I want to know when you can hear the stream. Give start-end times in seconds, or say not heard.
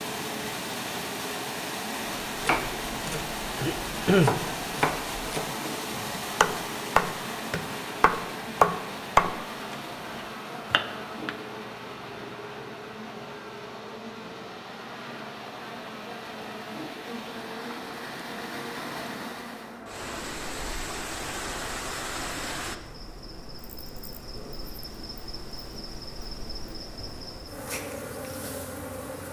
0.0-22.8.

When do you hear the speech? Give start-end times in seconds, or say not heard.
not heard.